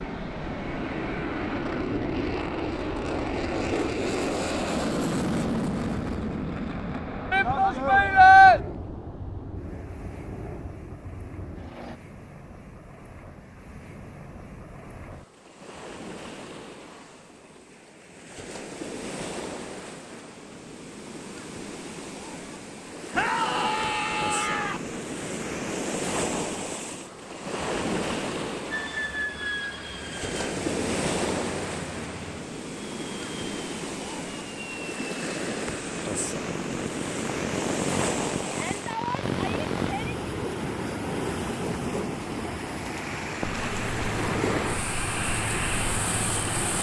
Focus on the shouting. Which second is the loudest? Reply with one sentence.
The loudest moment of the shouting is at 8 seconds.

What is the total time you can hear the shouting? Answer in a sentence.
The shouting can be heard for 5 seconds in total.